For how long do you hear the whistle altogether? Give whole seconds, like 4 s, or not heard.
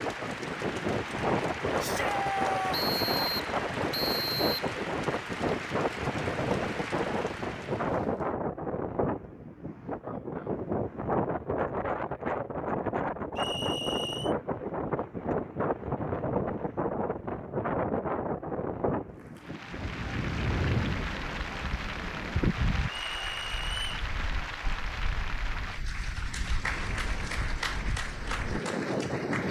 4 s.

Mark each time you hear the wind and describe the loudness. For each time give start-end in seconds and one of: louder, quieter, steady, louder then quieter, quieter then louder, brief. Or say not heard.
0.0-29.4 quieter.